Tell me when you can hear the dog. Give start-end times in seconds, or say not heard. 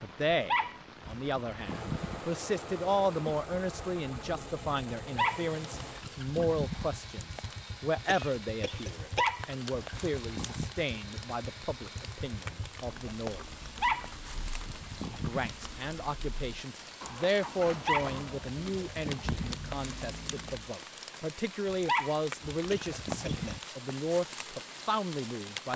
0.3-2.2, 5.0-6.9, 8.9-10.7, 13.6-15.6, 17.6-19.6, 21.6-23.6.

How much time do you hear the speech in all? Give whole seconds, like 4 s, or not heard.
24 s.